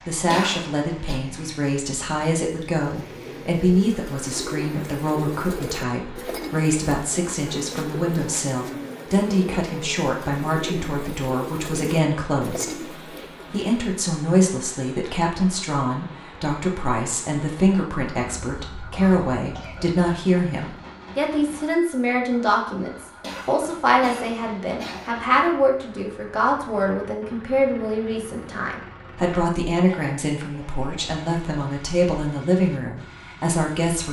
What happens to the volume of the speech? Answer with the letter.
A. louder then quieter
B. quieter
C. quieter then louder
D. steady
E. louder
D.